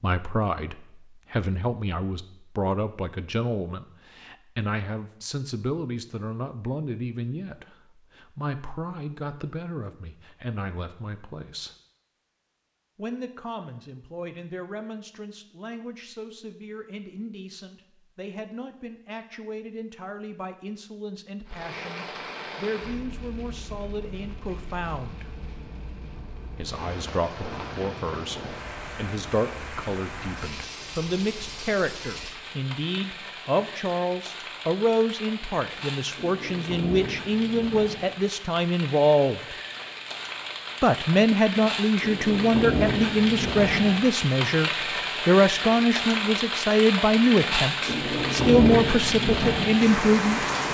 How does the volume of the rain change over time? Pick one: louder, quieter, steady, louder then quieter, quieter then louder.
louder.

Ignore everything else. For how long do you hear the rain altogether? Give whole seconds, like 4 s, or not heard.
29 s.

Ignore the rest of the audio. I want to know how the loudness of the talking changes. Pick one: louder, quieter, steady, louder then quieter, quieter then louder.
quieter then louder.